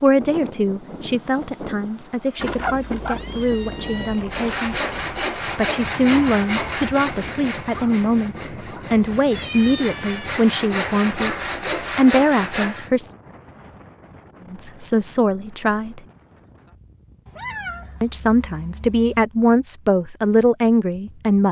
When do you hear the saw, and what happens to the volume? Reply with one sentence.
The saw can be heard from 4.3 to 12.9 s, getting quieter then louder.